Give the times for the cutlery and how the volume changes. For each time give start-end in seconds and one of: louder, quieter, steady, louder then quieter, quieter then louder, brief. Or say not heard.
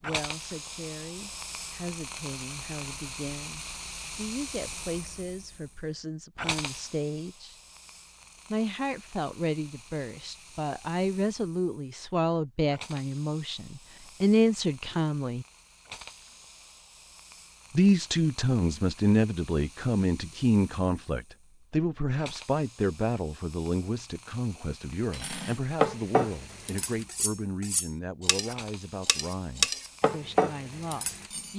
25.1-31.5 quieter then louder.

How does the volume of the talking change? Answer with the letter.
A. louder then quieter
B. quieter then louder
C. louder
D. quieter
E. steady
A.